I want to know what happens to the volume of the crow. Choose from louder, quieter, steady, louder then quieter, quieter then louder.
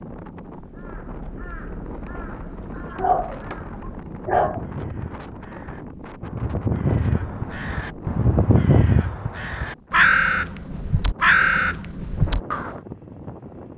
louder.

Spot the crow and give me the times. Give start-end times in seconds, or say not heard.
0.6-12.7.